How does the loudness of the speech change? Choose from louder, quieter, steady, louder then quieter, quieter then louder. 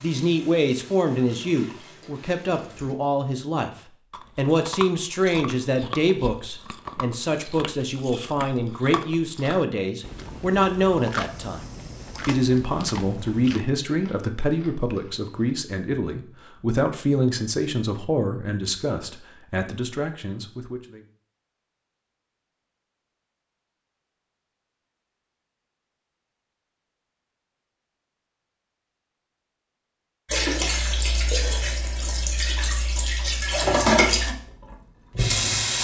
steady.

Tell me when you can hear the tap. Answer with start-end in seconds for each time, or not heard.
0.0-3.0, 30.2-35.7.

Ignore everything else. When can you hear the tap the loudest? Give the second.
34 s.